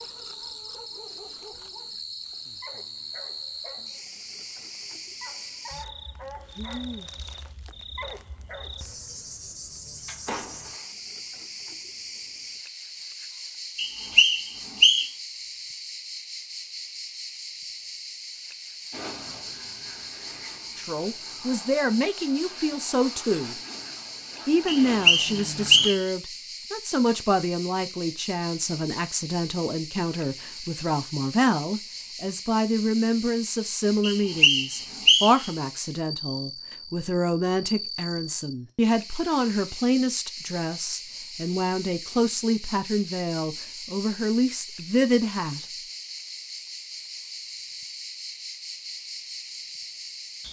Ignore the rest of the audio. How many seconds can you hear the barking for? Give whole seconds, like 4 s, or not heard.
9 s.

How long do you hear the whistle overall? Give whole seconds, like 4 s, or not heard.
4 s.